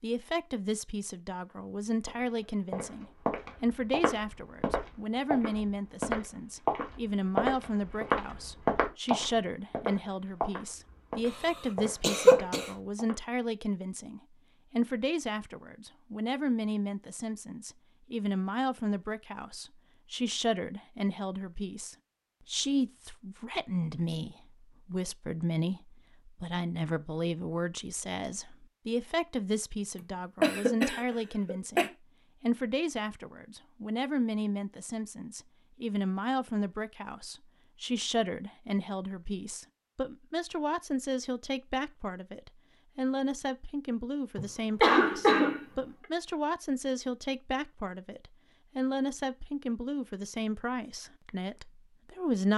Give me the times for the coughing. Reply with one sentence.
The coughing can be heard from 12.0 to 12.7 s, from 30.4 to 31.9 s and from 44.4 to 45.6 s.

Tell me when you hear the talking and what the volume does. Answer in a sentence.
The talking can be heard from 0.0 to 52.5 s, at a steady volume.